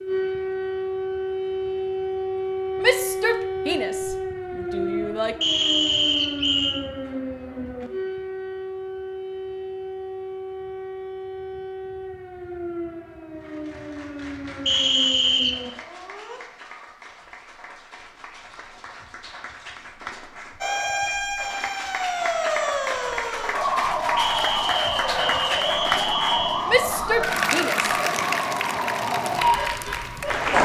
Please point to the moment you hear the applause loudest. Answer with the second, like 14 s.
28 s.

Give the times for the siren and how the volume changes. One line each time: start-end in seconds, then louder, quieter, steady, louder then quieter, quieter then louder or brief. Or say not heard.
0.0-16.4 quieter
20.6-30.5 steady.